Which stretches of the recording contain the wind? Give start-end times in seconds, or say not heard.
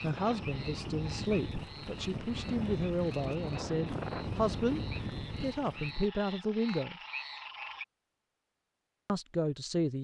0.0-6.1.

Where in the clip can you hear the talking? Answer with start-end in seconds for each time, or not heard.
0.0-4.8, 5.4-7.0, 9.1-9.9.